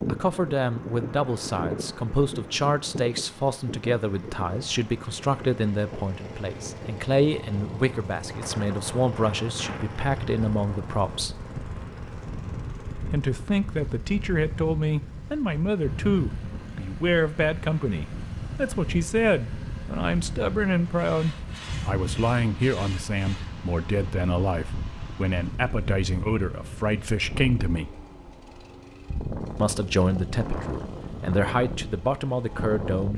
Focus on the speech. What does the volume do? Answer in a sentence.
The volume of the speech stays about the same.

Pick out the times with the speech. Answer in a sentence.
You can hear the speech from 0.1 to 11.3 s, from 13.1 to 27.9 s and from 29.6 to 33.1 s.